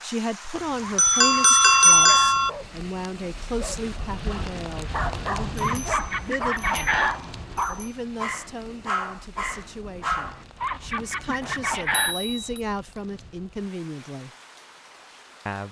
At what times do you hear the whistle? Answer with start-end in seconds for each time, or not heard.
not heard.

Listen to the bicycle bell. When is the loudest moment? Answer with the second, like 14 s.
2 s.